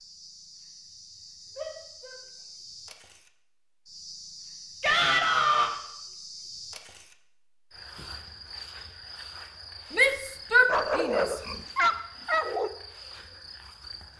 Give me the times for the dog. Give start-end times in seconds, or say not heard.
10.7-12.7.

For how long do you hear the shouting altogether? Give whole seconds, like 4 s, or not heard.
3 s.